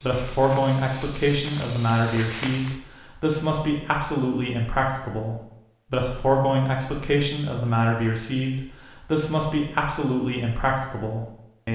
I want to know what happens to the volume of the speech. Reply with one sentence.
The loudness of the speech stays about the same.